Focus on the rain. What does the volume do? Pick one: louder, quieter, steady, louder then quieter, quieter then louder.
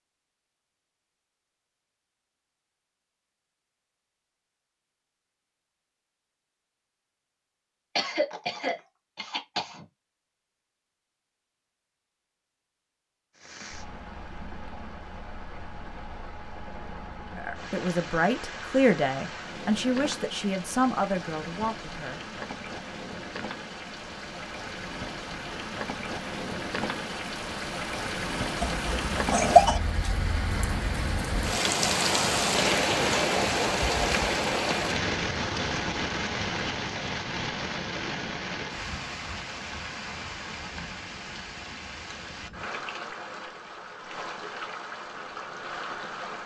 louder then quieter.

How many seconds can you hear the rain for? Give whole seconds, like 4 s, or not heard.
33 s.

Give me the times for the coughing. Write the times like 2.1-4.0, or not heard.
8.0-9.8, 28.6-29.8.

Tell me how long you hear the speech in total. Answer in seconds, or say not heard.
5 s.